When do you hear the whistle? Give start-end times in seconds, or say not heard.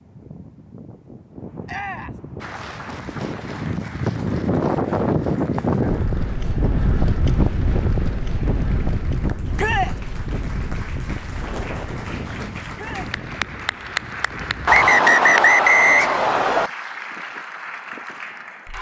14.7-16.7.